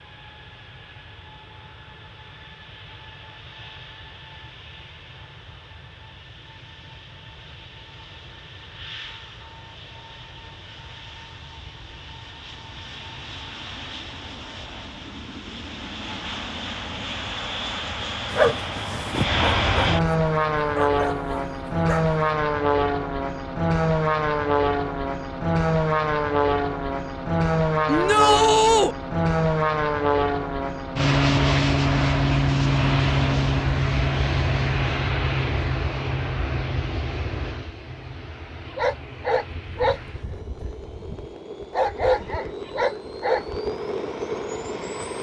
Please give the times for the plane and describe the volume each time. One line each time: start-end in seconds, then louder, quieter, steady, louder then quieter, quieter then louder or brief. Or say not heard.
0.0-45.1 louder then quieter.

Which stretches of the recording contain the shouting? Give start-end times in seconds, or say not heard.
27.9-28.9.